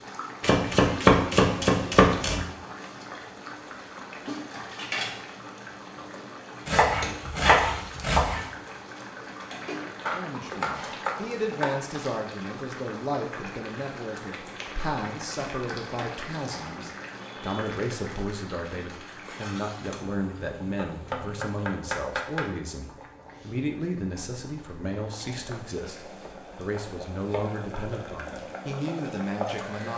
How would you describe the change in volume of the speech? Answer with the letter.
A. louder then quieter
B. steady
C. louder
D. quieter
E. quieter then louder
B.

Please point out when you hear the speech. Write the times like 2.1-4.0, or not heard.
10.1-29.9.